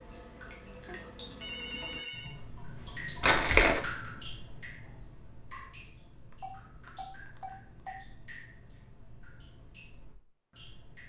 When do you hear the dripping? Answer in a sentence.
You can hear the dripping from 0.0 to 11.0 s.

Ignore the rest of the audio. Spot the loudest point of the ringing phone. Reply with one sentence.
The volume of the ringing phone peaks at 2 seconds.